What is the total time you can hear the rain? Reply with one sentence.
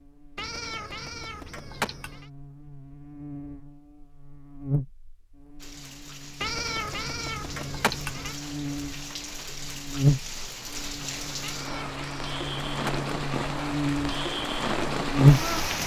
The rain can be heard for 10 seconds in total.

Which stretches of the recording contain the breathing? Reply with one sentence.
The breathing can't be heard in this clip.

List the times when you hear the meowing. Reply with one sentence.
You can hear the meowing from 0.3 to 2.2 s, from 6.4 to 8.3 s and from 11.4 to 13.1 s.